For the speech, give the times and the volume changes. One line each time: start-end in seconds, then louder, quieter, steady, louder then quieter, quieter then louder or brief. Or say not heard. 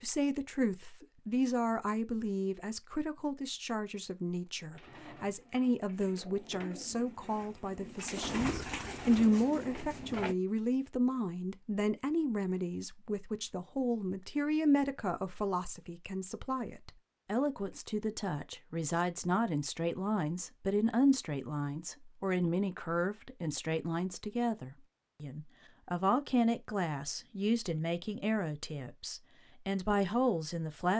0.0-30.9 steady.